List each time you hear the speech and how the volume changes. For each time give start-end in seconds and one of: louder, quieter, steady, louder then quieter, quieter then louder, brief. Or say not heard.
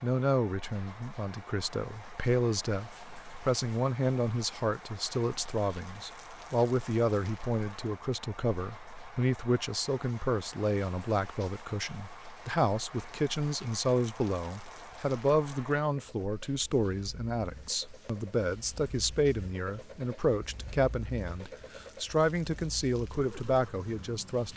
0.0-24.5 steady.